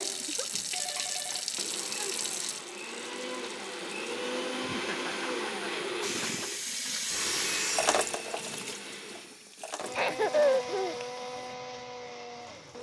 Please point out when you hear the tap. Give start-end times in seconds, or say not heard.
0.0-4.0, 6.0-12.7.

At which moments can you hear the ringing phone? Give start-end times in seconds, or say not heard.
0.7-2.1, 7.1-8.2.